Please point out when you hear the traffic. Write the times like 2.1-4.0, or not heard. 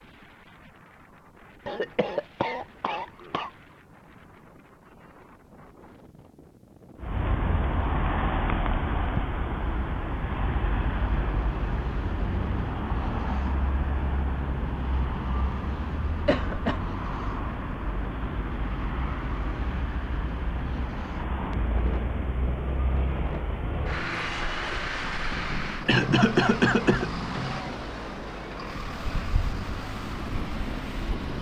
7.0-31.3.